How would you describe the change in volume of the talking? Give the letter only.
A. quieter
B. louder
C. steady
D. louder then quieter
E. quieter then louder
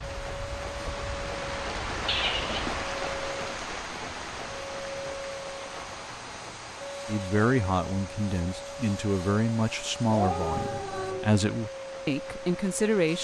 C.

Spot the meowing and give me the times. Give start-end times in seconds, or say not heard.
2.0-2.8, 5.7-6.8, 10.1-11.3.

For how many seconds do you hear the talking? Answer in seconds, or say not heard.
6 s.